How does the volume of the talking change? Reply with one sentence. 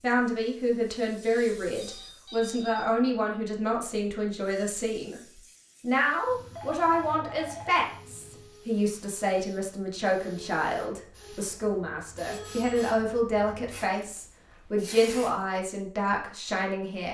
The loudness of the talking stays about the same.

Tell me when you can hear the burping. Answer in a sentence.
You can't hear the burping here.